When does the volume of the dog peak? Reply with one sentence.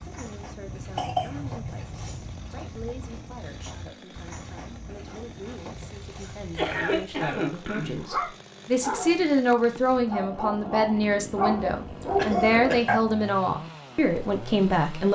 The loudest moment of the dog is at 12 seconds.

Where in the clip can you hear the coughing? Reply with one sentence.
You can hear the coughing from 0.7 to 2.3 s, from 6.2 to 8.0 s and from 12.2 to 12.8 s.